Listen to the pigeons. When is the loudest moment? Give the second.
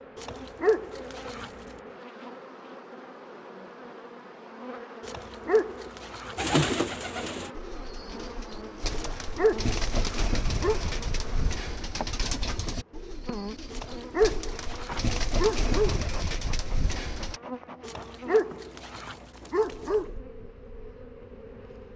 7 s.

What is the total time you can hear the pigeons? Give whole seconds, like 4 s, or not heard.
11 s.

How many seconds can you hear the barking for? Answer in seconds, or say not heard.
9 s.